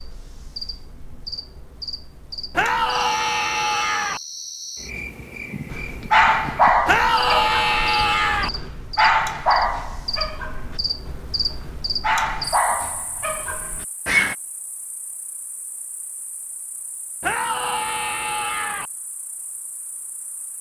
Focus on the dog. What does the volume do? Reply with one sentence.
The loudness of the dog goes down.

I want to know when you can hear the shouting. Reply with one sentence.
The shouting can be heard from 2.5 to 4.2 s, from 6.8 to 8.5 s and from 17.2 to 18.9 s.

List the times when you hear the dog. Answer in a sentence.
The dog can be heard from 5.7 to 14.3 s.